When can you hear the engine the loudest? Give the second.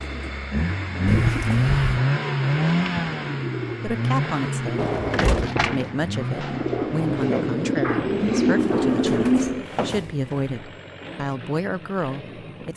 2 s.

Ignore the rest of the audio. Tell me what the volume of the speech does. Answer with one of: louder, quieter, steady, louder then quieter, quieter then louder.
steady.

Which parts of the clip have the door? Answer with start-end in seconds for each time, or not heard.
1.1-1.9, 4.8-5.5, 8.6-10.5.